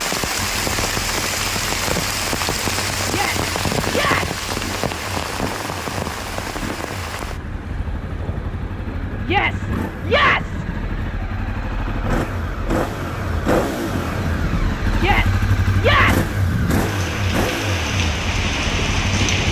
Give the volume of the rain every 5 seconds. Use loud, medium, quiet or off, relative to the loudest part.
loud, medium, medium, loud.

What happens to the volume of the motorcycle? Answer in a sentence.
The volume of the motorcycle goes up.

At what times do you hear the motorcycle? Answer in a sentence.
The motorcycle can be heard from 0.2 to 19.3 s.